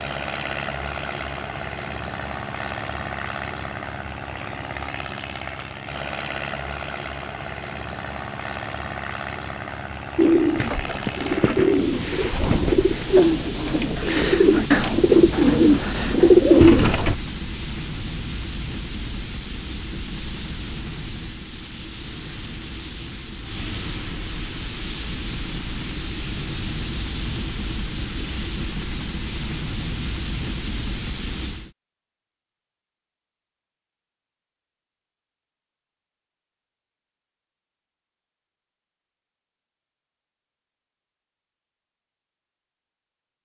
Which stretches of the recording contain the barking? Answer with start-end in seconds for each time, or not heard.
not heard.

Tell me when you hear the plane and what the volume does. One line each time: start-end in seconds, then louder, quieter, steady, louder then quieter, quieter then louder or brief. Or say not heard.
0.0-31.7 steady.